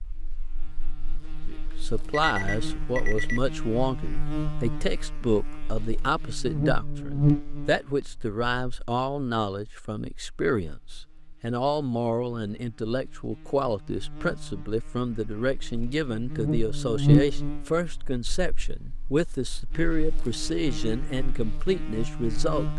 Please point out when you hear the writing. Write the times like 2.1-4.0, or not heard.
not heard.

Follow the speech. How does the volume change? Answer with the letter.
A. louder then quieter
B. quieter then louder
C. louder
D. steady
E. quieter
D.